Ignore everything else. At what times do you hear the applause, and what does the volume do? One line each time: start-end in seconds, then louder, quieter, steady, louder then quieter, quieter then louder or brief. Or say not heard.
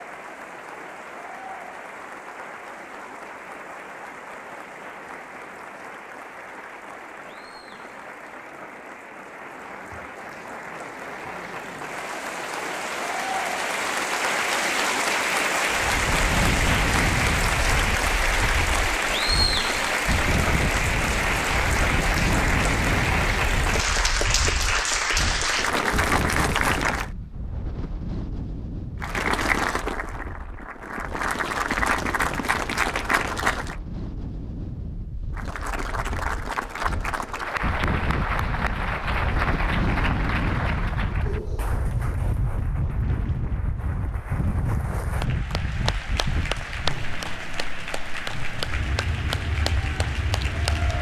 0.0-27.1 louder
29.0-33.8 quieter then louder
35.4-50.9 quieter then louder.